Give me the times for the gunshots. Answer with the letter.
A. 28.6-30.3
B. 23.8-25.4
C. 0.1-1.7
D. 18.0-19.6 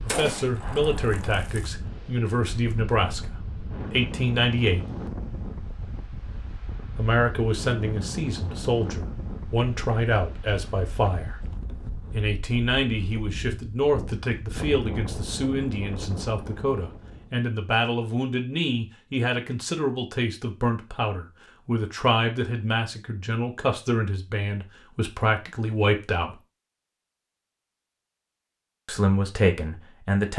C.